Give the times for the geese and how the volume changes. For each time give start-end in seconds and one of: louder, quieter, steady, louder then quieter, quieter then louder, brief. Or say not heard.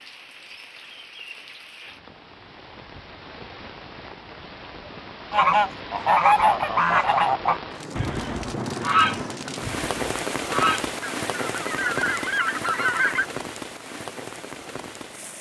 5.3-13.2 quieter.